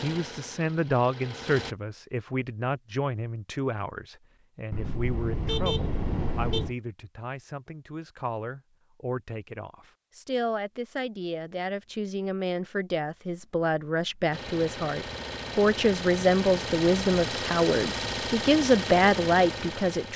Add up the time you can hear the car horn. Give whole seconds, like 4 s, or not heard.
2 s.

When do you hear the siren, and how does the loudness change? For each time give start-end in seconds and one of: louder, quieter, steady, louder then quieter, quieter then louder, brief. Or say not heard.
not heard.